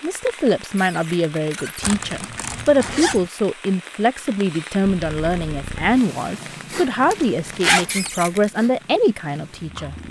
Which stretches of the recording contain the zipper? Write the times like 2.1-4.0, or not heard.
1.8-3.3, 7.0-8.1.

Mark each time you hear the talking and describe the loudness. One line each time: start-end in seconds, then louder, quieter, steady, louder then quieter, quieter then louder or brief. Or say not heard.
0.0-9.9 steady.